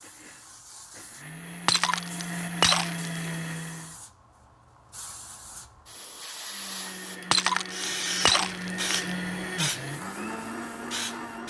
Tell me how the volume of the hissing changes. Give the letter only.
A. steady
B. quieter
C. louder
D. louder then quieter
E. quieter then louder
C.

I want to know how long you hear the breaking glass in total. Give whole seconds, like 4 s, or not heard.
3 s.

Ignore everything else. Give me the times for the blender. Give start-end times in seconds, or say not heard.
0.0-4.0, 6.5-11.4.